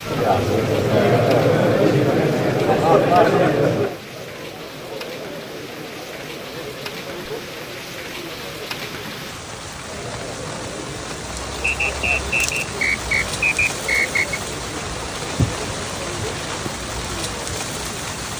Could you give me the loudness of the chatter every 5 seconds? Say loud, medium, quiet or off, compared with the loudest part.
loud, quiet, quiet, quiet.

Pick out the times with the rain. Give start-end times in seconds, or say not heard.
0.0-18.3.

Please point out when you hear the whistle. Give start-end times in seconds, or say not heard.
11.8-14.4.